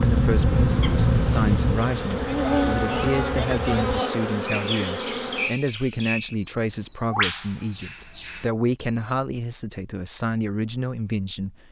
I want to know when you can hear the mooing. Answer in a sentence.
The mooing can be heard from 2.2 to 4.2 s.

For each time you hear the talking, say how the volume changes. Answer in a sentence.
The talking can be heard from 0.0 to 11.6 s, at a steady volume.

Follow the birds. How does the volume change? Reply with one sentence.
The volume of the birds goes down.